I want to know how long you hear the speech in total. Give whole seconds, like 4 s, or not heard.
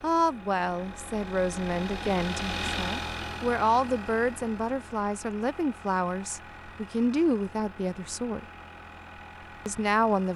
9 s.